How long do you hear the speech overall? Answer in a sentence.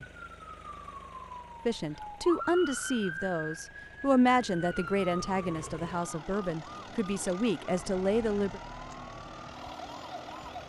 You can hear the speech for 7 seconds altogether.